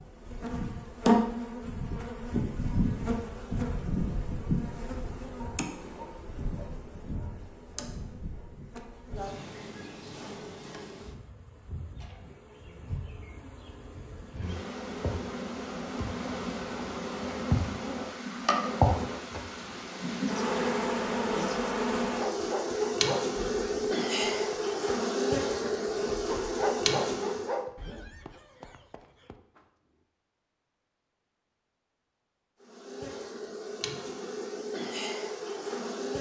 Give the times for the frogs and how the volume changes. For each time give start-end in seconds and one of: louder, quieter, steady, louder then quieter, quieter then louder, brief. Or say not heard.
not heard.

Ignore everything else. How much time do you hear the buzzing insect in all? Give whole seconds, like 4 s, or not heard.
31 s.